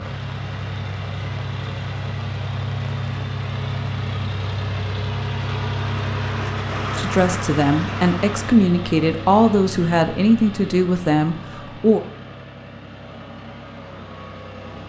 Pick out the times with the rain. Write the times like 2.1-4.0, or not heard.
0.0-8.6.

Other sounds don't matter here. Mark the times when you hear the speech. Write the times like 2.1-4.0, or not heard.
7.0-12.0.